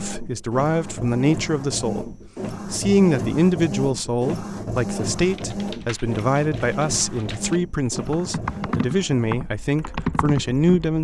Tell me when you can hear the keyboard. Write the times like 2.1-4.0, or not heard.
5.2-10.8.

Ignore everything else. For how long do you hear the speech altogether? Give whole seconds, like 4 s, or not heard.
11 s.